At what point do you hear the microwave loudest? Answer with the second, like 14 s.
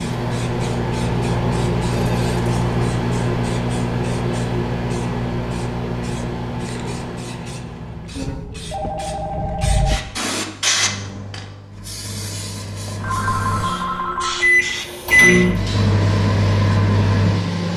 15 s.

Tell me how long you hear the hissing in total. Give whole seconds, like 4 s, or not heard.
18 s.